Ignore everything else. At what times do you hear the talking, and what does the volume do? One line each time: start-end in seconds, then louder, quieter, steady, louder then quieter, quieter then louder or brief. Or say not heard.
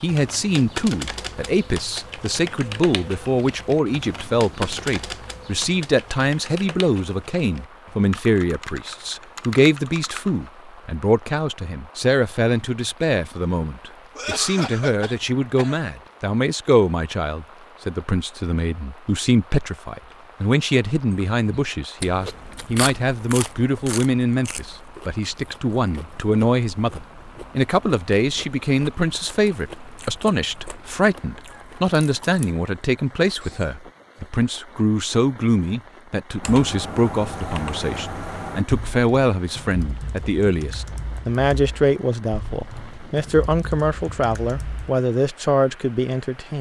0.0-46.5 steady.